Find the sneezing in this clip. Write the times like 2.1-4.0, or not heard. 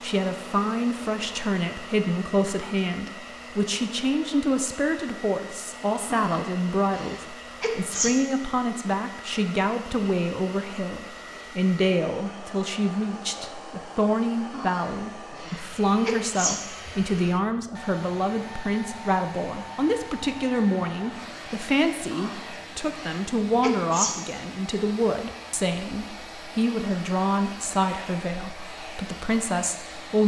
6.1-8.1, 14.5-16.6, 22.1-24.1.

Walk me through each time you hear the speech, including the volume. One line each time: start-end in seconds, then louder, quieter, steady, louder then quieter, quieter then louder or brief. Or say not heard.
0.0-30.2 steady.